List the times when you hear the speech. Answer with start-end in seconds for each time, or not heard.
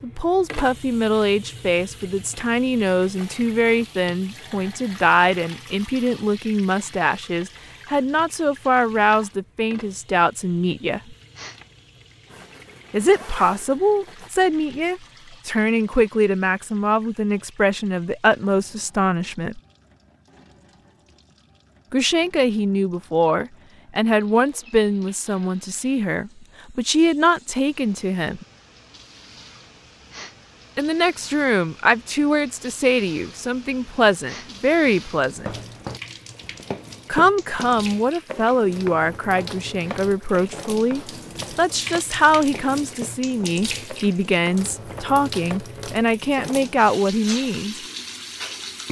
0.0-11.2, 12.9-19.6, 21.9-28.4, 30.8-35.5, 37.0-47.8.